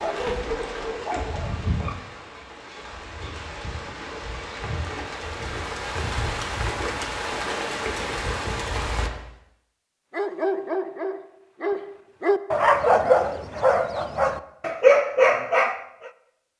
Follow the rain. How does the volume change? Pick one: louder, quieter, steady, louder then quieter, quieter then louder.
quieter then louder.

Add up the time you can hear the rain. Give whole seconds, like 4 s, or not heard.
9 s.